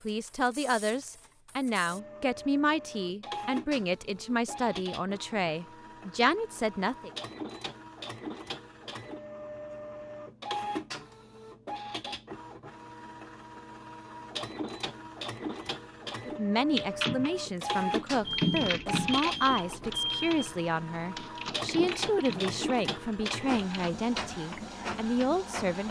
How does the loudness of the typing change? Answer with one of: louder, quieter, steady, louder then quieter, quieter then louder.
louder then quieter.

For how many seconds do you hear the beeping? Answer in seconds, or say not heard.
2 s.